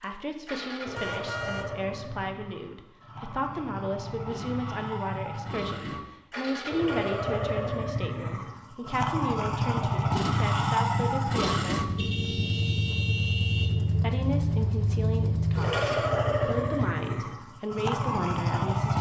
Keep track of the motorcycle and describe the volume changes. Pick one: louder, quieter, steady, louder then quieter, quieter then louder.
louder.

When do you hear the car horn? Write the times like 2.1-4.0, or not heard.
0.9-1.7, 11.9-13.8.